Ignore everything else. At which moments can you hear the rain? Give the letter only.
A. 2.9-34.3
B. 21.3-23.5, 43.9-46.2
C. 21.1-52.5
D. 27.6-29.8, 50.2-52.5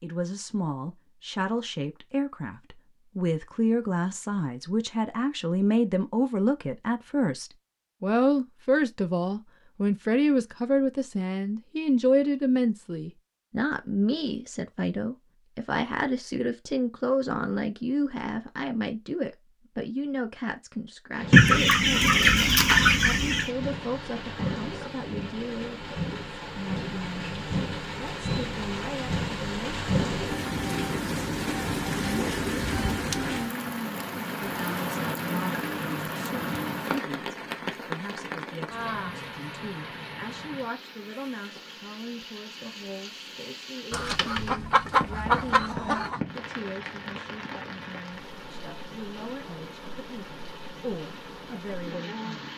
C.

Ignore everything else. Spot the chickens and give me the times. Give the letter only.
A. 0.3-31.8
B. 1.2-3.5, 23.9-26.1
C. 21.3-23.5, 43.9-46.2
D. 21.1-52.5
C.